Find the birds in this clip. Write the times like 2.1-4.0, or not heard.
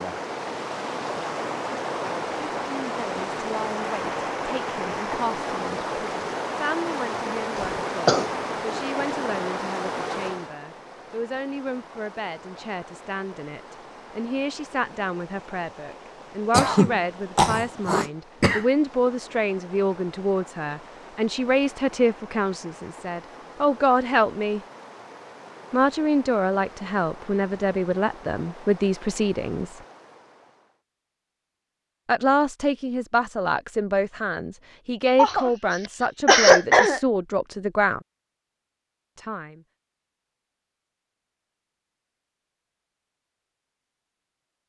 not heard.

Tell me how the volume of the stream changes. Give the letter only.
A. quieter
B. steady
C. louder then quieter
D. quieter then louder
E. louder
A.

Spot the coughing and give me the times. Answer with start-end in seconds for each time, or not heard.
7.5-8.3, 16.5-18.6, 35.1-37.0.